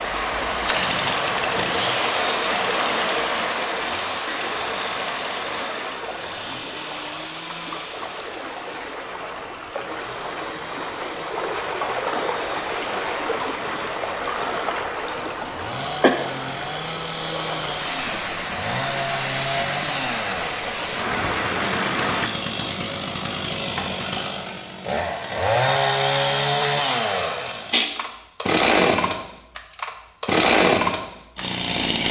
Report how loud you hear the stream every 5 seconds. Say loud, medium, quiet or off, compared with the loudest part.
loud, medium, loud, loud, loud, off, off.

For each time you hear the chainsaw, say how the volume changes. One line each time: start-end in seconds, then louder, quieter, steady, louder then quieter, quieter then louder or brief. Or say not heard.
0.0-32.0 quieter then louder.